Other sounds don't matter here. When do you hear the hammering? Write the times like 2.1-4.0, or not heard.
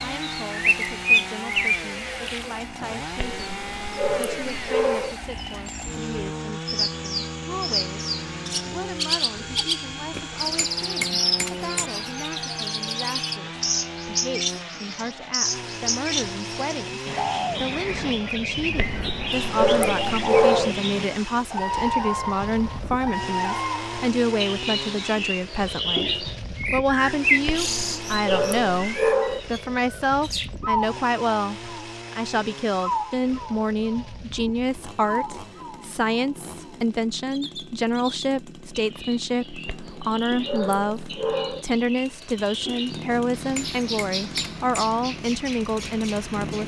10.1-11.9, 43.1-44.9.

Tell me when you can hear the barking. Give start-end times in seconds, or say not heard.
3.4-5.2, 18.8-20.8, 27.4-29.4, 39.6-41.6.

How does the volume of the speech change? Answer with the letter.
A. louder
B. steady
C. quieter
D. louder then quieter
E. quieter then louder
A.